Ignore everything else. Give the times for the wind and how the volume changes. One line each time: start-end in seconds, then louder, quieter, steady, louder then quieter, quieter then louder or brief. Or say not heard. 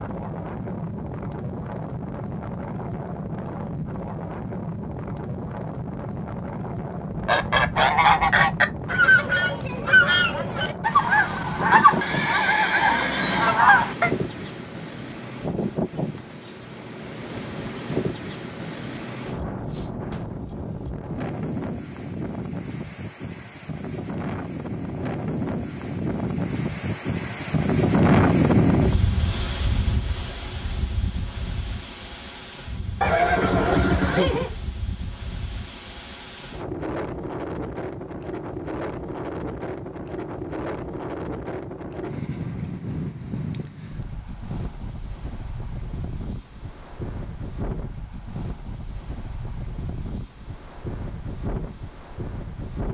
0.0-52.9 louder then quieter.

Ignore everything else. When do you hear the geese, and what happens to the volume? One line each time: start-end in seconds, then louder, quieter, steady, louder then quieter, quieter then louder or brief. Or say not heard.
7.2-14.1 steady.